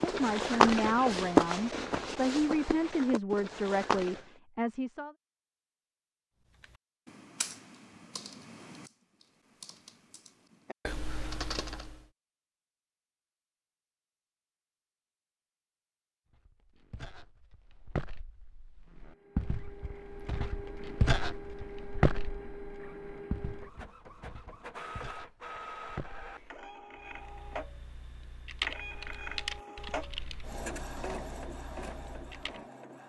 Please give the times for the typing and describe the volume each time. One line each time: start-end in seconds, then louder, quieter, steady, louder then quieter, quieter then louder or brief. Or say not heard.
6.5-12.1 quieter then louder
26.9-32.6 louder then quieter.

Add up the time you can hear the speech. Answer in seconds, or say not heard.
5 s.